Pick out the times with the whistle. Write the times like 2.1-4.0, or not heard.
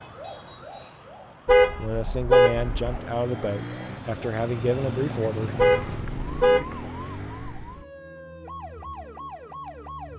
0.2-1.1.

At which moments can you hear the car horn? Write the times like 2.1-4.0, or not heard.
1.4-3.0, 5.5-6.7.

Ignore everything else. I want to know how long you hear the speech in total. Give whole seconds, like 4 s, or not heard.
4 s.